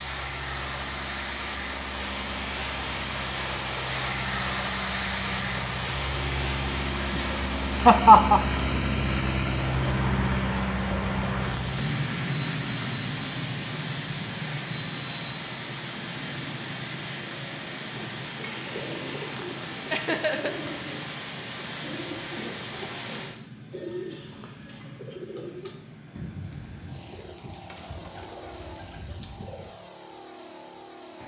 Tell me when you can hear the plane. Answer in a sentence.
The plane can be heard from 0.0 to 31.2 s.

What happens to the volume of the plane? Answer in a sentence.
The loudness of the plane goes up, then down.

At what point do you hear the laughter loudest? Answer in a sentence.
The volume of the laughter peaks at 8 seconds.